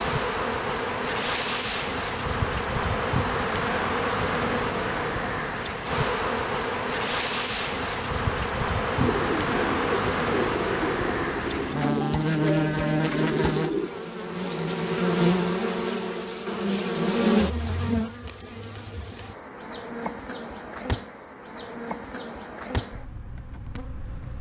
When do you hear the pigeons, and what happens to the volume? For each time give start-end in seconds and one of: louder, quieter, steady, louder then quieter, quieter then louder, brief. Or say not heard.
8.9-13.9 steady.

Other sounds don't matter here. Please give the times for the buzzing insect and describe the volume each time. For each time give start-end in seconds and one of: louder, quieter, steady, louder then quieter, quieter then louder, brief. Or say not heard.
0.0-24.3 quieter.